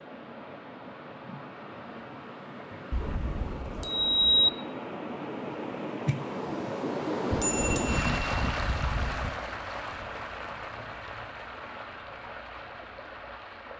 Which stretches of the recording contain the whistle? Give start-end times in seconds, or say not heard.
not heard.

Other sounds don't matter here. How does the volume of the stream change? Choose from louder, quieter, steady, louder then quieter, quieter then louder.
louder then quieter.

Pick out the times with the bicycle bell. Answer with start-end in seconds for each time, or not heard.
2.9-4.5, 7.3-9.3.